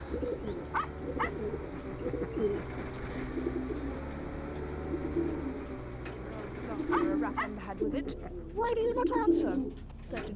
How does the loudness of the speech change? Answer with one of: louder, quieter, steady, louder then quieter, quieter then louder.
louder then quieter.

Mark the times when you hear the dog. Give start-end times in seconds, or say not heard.
0.7-2.8, 6.9-8.3.